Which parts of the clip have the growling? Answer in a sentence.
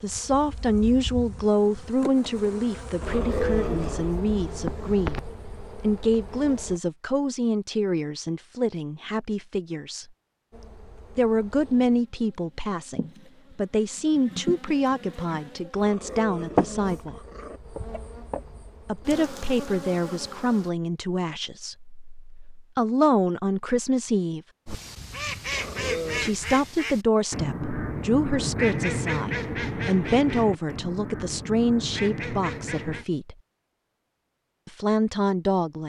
The growling can be heard from 3.0 to 4.2 s, from 15.8 to 17.6 s and from 25.5 to 26.4 s.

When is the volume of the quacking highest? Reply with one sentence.
The volume of the quacking peaks at 29 seconds.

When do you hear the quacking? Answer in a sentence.
You can hear the quacking from 24.6 to 33.0 s.